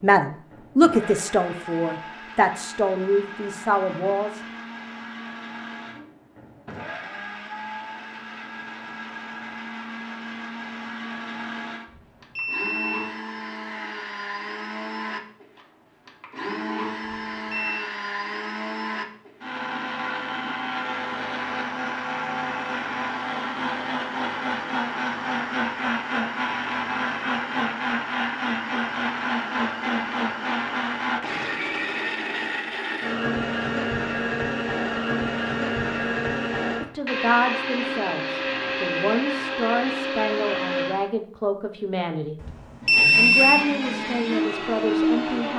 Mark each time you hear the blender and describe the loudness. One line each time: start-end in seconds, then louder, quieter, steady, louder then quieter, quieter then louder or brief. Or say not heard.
0.0-41.1 louder
42.8-45.5 brief.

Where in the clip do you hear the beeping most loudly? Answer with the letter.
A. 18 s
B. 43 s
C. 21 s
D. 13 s
B.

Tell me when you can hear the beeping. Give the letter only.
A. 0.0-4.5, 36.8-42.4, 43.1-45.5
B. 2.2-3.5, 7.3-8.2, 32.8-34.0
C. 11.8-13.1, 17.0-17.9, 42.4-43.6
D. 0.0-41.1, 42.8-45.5
C.